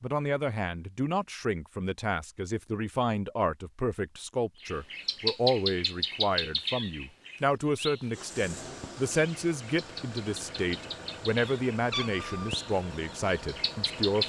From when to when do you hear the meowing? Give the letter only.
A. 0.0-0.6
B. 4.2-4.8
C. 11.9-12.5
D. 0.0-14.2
C.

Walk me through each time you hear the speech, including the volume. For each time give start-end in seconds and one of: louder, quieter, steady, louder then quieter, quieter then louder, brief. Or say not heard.
0.0-14.2 steady.